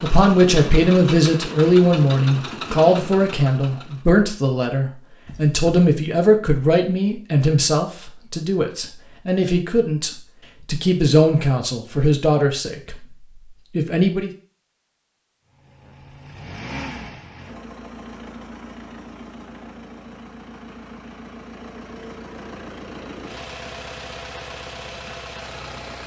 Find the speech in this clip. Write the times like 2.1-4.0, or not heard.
0.0-14.3.